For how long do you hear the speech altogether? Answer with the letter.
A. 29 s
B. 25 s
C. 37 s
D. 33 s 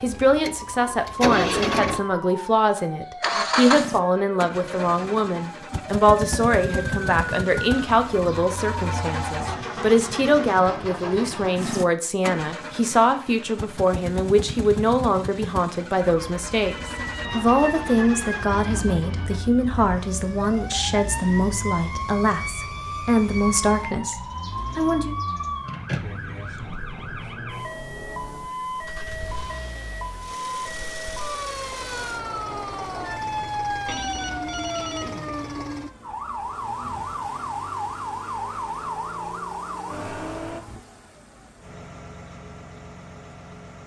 B.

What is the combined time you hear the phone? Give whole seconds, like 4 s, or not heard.
2 s.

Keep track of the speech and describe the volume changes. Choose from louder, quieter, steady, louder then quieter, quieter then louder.
steady.